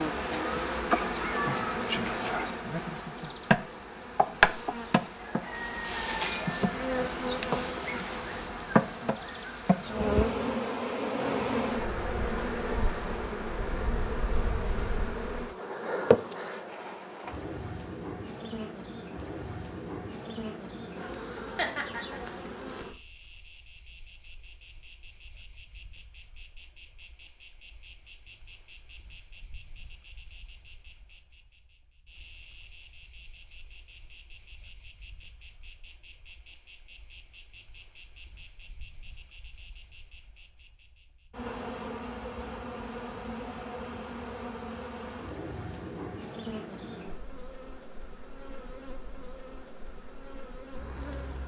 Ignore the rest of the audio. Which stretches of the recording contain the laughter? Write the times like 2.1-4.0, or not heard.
21.1-22.4.